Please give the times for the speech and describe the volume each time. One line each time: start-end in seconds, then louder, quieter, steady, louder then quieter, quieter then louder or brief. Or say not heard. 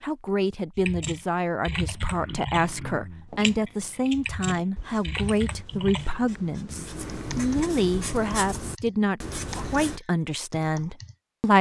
0.0-11.5 steady.